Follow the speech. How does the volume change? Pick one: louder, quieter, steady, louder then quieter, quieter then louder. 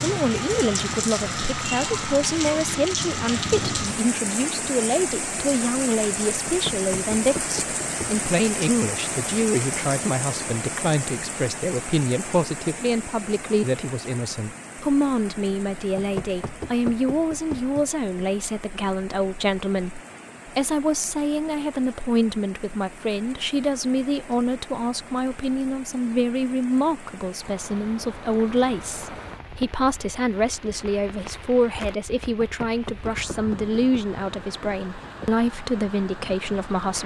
steady.